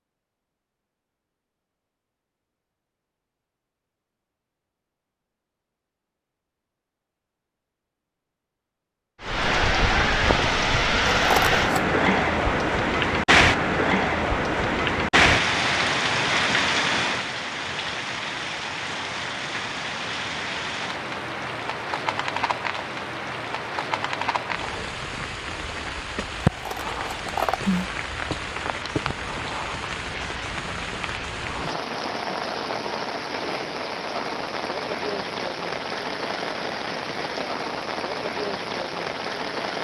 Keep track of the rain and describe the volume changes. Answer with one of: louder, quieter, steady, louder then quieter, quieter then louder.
quieter.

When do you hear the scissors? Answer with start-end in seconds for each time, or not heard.
11.2-11.8, 26.4-27.9.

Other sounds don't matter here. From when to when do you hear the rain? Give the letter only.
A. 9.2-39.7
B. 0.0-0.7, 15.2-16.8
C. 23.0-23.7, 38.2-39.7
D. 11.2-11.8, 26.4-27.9
A.